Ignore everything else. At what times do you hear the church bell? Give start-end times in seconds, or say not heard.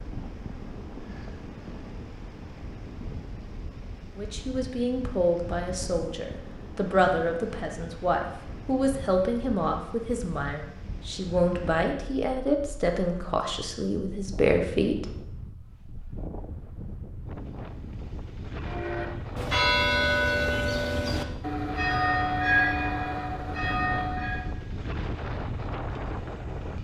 18.6-24.6.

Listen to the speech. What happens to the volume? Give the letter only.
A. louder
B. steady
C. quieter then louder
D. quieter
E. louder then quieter
B.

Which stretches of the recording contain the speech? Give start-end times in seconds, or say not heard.
4.2-15.2.